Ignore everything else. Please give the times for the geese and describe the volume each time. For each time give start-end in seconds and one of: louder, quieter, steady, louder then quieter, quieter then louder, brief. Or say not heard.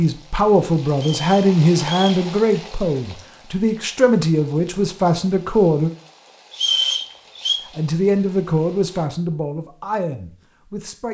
not heard.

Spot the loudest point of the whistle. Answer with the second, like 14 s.
7 s.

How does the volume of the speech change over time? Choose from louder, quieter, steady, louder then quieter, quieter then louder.
quieter.